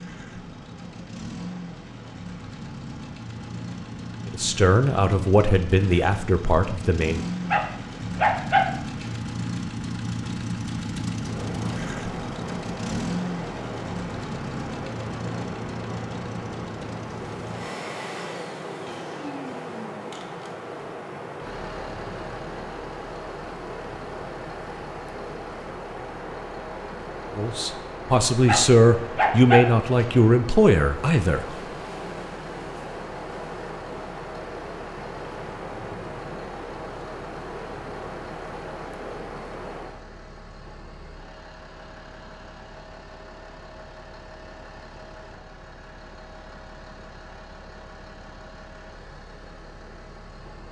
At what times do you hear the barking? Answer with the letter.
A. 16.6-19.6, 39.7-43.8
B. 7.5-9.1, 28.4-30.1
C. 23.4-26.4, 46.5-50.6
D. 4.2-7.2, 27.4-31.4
B.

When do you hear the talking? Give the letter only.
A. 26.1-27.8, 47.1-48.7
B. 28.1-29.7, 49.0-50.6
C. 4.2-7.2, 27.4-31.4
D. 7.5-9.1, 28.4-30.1
C.